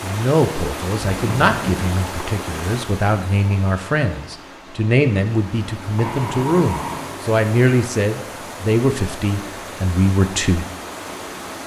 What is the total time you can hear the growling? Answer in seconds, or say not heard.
2 s.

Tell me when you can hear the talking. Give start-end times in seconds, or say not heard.
0.0-10.7.